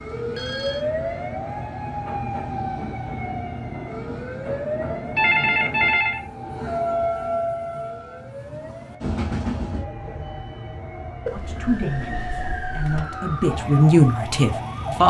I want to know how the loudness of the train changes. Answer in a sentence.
The loudness of the train goes up, then down.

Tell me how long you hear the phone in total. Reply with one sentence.
You can hear the phone for 4 seconds altogether.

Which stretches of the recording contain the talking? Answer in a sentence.
You can hear the talking from 11.3 to 15.0 s.